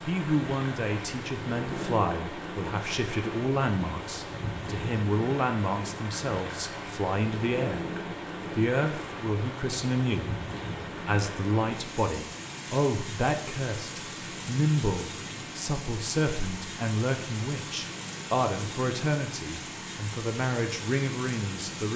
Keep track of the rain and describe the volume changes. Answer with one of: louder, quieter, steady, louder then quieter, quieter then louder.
steady.